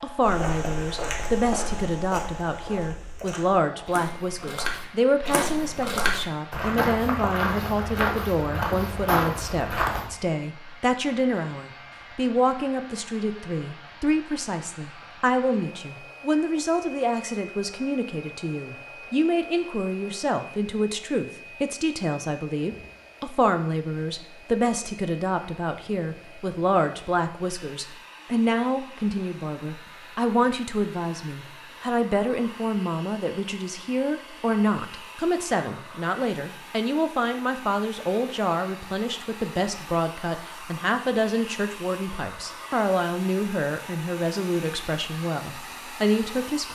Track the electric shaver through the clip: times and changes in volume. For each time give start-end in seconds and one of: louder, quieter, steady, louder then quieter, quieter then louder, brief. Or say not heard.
not heard.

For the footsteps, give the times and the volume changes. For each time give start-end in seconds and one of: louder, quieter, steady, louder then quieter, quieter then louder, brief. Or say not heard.
0.2-10.1 quieter then louder.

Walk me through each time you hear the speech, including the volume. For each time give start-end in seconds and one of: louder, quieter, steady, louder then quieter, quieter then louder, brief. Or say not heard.
0.0-46.7 steady.